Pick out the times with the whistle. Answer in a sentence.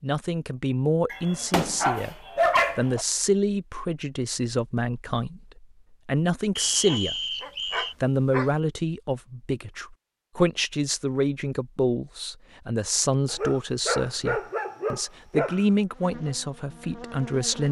You can hear the whistle from 6.5 to 8.0 s.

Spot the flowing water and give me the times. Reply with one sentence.
The flowing water can't be heard in this clip.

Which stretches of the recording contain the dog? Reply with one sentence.
The dog can be heard from 1.1 to 3.0 s, from 6.8 to 8.5 s and from 13.3 to 15.7 s.